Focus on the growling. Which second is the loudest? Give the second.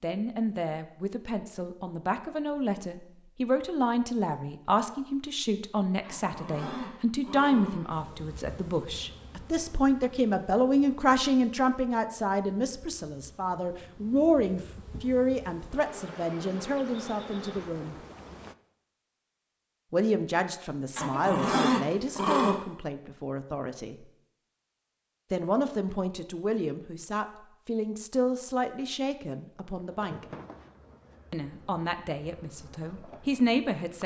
22 s.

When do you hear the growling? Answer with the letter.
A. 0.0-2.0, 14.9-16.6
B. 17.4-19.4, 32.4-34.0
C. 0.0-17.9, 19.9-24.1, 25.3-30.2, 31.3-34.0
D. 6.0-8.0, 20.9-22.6
D.